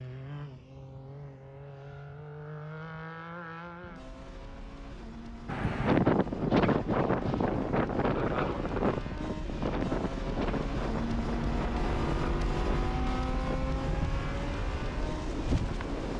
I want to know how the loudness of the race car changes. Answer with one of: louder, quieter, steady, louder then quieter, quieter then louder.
louder.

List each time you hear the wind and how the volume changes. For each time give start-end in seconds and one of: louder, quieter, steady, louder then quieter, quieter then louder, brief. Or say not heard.
5.5-16.1 quieter.